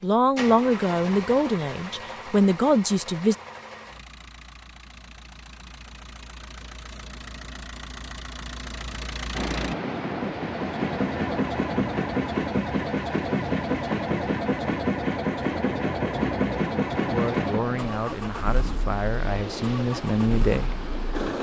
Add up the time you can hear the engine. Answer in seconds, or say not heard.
21 s.